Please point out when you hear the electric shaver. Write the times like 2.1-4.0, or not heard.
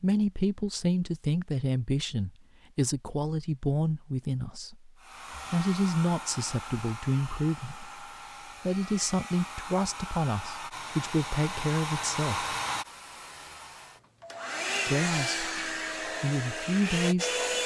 not heard.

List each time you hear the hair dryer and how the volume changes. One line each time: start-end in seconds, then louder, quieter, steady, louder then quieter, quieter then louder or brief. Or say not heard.
5.0-17.6 louder.